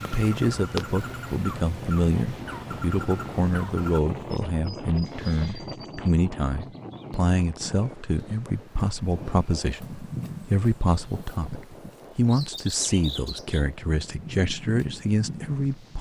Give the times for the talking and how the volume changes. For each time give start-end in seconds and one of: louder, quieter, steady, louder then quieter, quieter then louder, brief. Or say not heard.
0.0-15.9 steady.